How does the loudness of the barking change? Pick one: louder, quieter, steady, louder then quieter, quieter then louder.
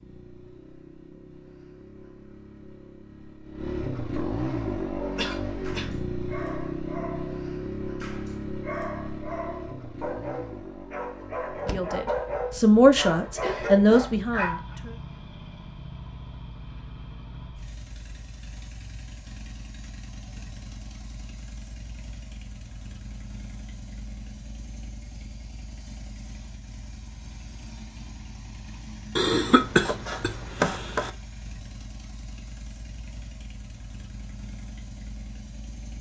louder.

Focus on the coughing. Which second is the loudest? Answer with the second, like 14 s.
30 s.